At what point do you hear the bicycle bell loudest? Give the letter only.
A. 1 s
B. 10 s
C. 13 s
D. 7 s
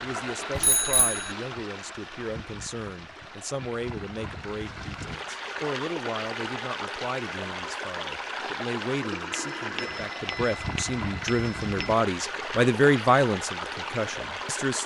A.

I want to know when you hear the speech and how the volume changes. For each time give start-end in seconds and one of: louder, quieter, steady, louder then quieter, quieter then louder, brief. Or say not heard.
0.0-14.8 louder.